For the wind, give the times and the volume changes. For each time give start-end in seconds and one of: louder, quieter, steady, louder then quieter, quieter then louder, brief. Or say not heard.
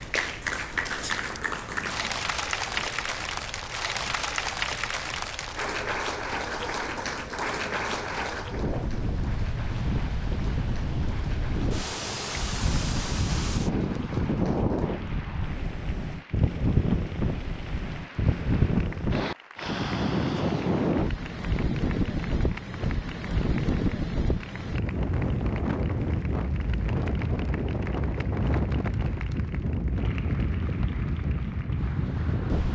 0.0-32.7 louder.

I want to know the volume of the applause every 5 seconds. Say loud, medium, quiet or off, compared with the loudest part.
loud, loud, quiet, quiet, quiet, quiet, quiet.